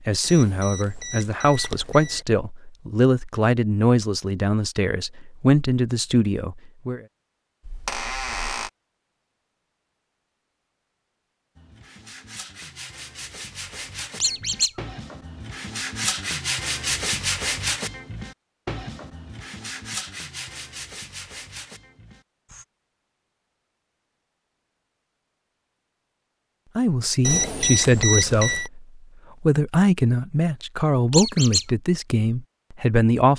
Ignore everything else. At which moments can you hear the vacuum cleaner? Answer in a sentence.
You can't hear the vacuum cleaner here.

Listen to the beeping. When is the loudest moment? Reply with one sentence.
The loudest moment of the beeping is at 28 seconds.